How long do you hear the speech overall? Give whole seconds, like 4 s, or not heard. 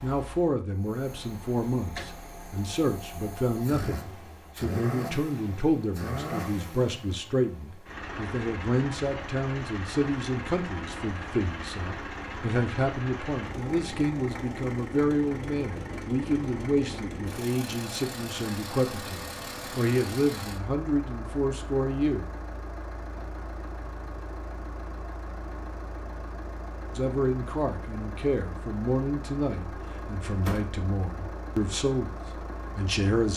28 s.